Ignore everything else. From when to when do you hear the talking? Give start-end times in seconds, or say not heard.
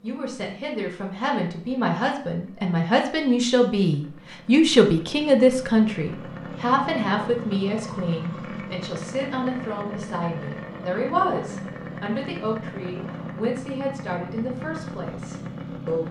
0.0-16.0.